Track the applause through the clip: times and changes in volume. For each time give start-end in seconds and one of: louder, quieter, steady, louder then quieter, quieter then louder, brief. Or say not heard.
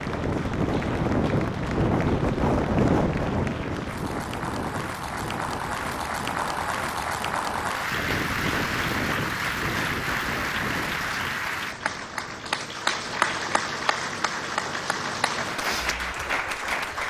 0.0-17.0 louder.